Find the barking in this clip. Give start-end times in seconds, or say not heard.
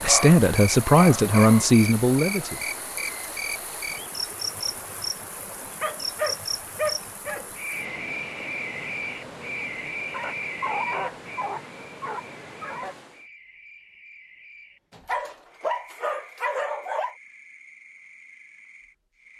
0.0-1.7, 5.8-7.5, 10.1-12.9, 14.9-17.1.